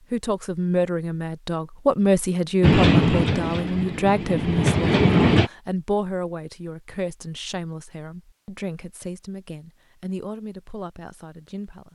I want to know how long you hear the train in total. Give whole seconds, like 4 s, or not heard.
3 s.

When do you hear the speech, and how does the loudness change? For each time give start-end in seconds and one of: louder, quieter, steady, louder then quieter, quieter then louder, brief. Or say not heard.
0.1-11.8 quieter.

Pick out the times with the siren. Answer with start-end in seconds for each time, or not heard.
not heard.